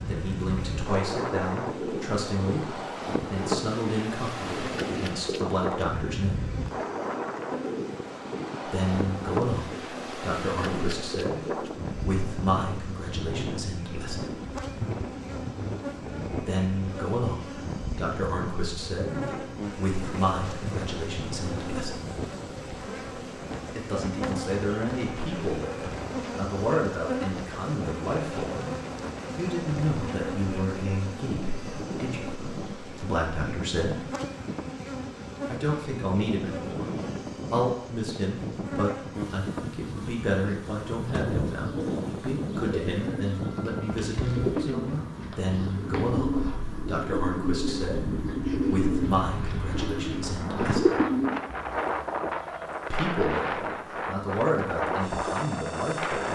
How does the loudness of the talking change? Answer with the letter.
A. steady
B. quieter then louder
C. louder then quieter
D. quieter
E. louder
A.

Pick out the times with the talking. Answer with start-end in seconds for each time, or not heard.
0.1-6.4, 8.7-14.2, 16.4-22.0, 23.7-34.0, 35.5-50.9, 52.9-56.2.